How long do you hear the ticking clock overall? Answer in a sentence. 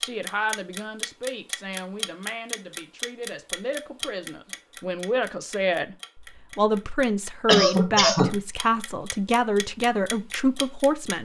You can hear the ticking clock for 11 seconds altogether.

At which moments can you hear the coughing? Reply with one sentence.
The coughing can be heard from 7.5 to 8.3 s.